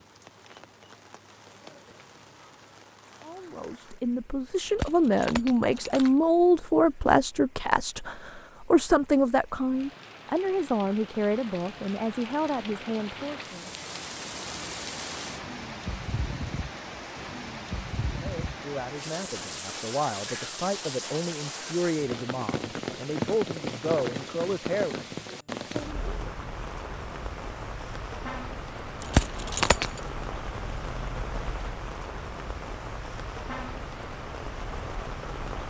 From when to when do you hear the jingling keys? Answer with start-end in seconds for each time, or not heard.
4.7-6.1, 29.0-30.0.